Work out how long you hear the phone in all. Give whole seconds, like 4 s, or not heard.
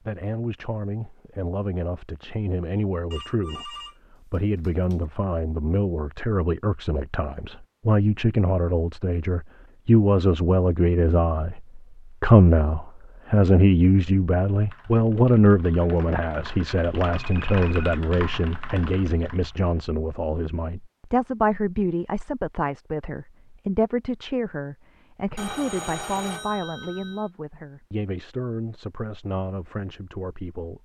5 s.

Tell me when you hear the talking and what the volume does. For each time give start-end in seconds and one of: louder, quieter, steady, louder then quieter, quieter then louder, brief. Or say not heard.
0.1-30.8 louder then quieter.